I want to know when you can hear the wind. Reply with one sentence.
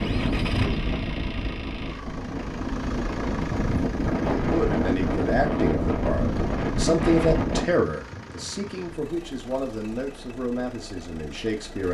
You can hear the wind from 0.0 to 7.7 s.